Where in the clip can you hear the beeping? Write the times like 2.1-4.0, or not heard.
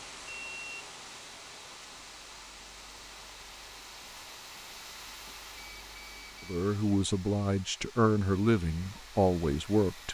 0.2-0.8, 5.5-6.7.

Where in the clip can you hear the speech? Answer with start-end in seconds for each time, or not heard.
6.5-10.0.